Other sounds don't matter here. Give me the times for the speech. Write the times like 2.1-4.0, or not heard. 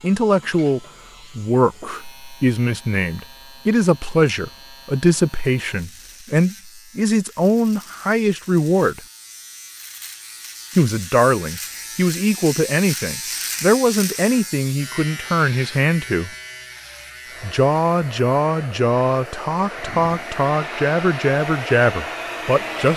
0.0-9.0, 10.8-16.3, 17.4-22.9.